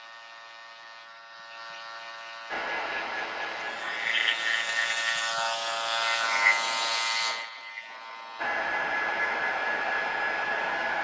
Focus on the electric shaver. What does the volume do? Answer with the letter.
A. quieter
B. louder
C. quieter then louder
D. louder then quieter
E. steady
D.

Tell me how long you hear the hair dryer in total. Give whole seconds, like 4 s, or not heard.
5 s.